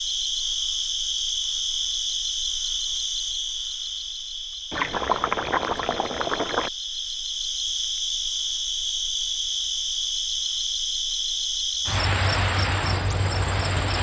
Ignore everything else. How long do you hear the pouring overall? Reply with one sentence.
The pouring can be heard for 2 seconds in total.